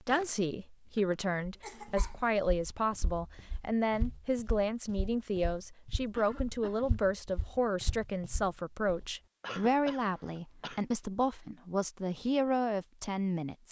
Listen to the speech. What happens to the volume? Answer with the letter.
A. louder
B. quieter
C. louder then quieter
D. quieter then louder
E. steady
E.